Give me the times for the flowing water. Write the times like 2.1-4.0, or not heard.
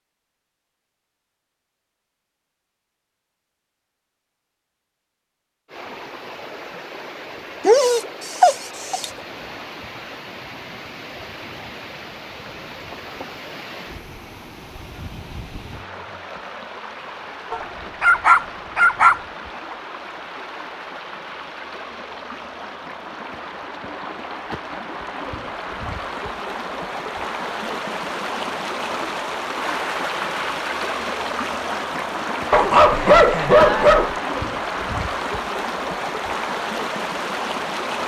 5.7-38.0.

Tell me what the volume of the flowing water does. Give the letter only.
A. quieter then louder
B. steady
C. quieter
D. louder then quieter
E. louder
E.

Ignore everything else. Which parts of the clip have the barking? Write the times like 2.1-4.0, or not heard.
7.7-9.1, 17.5-19.2, 32.5-34.1.